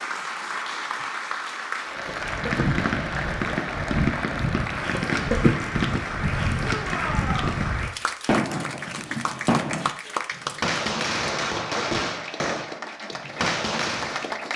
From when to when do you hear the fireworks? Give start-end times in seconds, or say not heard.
1.9-14.3.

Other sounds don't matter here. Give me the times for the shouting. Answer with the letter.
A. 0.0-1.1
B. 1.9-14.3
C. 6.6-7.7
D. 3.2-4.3
C.